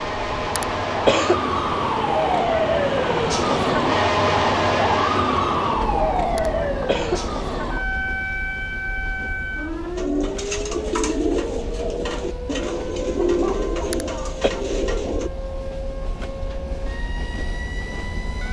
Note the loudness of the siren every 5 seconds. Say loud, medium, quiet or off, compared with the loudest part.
loud, loud, medium, quiet.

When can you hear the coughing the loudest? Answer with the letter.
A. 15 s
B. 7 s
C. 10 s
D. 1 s
D.